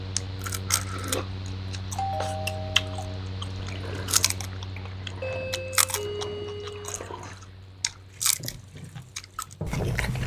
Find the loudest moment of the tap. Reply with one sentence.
The volume of the tap peaks at 10 seconds.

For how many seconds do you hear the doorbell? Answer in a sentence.
The doorbell can be heard for 3 seconds in total.